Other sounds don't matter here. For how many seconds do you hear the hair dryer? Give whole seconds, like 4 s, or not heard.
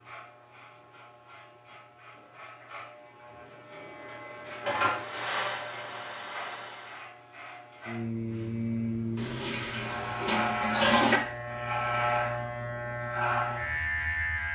2 s.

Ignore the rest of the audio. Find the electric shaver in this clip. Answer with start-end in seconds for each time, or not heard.
0.0-14.5.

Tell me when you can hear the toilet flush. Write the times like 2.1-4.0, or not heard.
9.2-11.2.